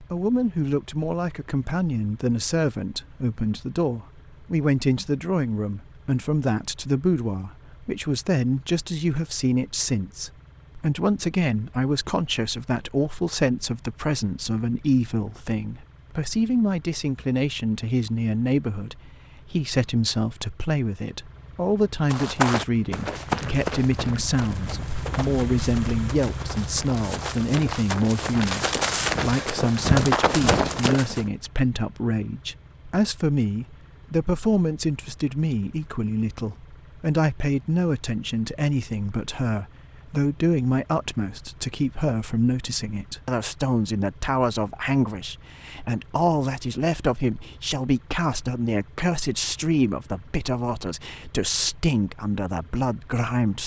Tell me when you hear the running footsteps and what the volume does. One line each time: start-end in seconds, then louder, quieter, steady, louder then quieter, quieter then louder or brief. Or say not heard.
22.1-31.2 quieter then louder.